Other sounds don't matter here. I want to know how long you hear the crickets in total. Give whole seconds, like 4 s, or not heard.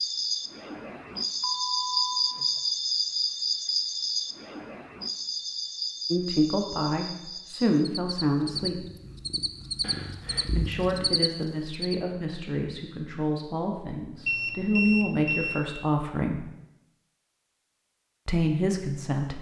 12 s.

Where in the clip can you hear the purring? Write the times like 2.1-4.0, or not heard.
8.3-11.2.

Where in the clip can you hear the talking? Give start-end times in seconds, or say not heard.
6.1-8.8, 10.6-16.4, 18.2-19.3.